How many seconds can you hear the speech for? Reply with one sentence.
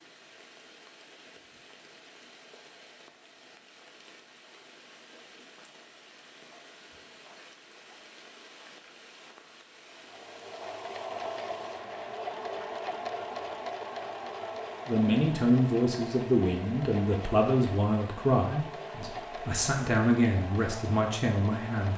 You can hear the speech for 7 seconds altogether.